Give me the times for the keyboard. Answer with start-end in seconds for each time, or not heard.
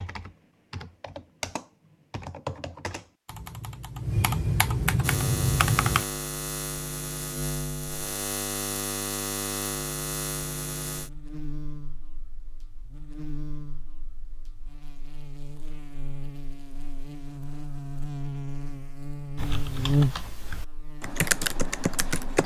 0.0-6.0, 19.4-22.4.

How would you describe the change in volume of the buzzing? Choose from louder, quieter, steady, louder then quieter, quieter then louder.
quieter then louder.